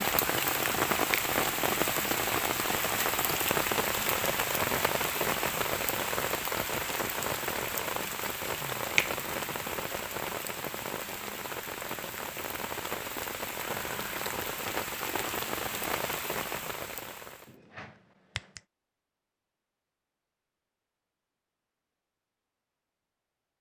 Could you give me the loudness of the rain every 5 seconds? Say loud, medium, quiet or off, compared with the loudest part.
loud, loud, medium, medium, off.